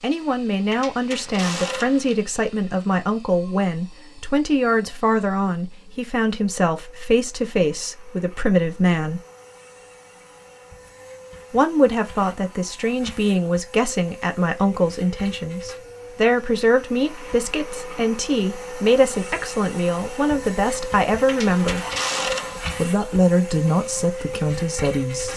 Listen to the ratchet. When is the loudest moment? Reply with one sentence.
The volume of the ratchet peaks at 22 seconds.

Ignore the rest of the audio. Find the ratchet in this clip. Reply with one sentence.
The ratchet can be heard from 0.7 to 2.2 s and from 21.2 to 22.8 s.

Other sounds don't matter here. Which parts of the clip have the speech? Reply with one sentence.
The speech can be heard from 0.0 to 9.2 s, from 11.5 to 21.9 s and from 22.8 to 25.3 s.